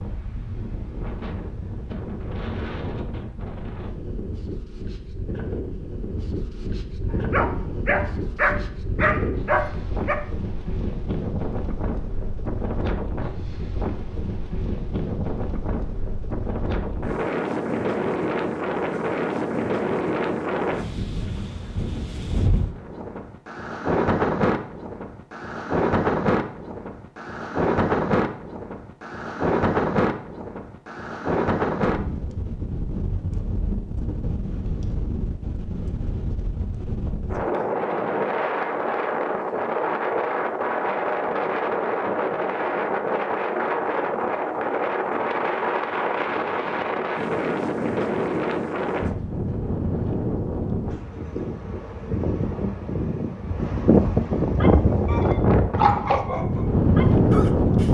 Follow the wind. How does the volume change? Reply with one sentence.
The loudness of the wind goes up.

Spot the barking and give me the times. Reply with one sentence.
The barking can be heard from 7.1 to 10.2 s and from 54.6 to 57.9 s.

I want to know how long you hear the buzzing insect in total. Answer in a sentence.
The buzzing insect can't be heard in this clip.